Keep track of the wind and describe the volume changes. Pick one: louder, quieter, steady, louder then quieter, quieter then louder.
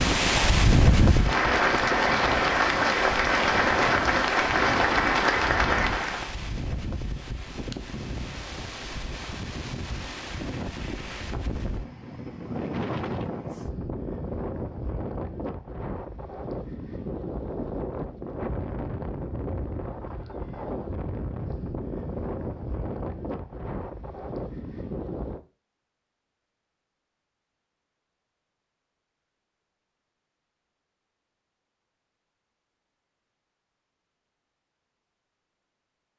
quieter.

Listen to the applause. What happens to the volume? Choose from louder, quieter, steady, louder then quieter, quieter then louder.
steady.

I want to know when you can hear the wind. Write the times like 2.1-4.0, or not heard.
0.0-25.4.